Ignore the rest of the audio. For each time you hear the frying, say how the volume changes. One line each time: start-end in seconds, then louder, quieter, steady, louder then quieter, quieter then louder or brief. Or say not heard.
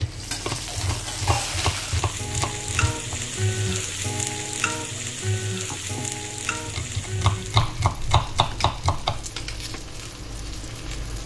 0.0-11.2 quieter.